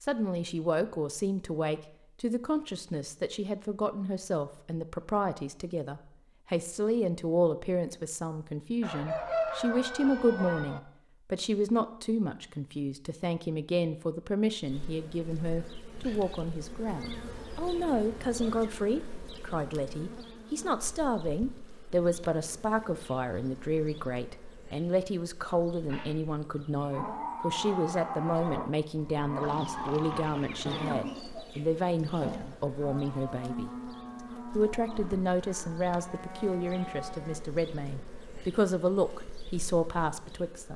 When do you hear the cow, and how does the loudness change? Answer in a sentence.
You can hear the cow from 25.9 to 37.4 s, getting quieter.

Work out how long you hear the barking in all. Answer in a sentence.
The barking can't be heard in this clip.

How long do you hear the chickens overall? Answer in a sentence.
You can hear the chickens for 5 seconds altogether.